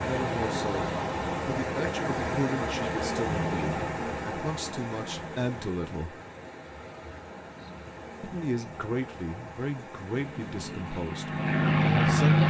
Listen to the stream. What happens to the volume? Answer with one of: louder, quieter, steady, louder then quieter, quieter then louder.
quieter.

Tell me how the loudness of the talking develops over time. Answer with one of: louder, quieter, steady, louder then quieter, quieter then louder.
steady.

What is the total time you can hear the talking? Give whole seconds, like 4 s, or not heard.
10 s.